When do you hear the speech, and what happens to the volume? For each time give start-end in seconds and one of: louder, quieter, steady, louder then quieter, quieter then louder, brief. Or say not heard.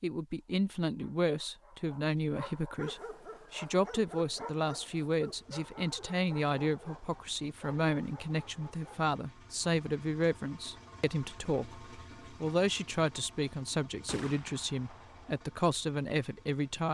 0.0-16.8 steady.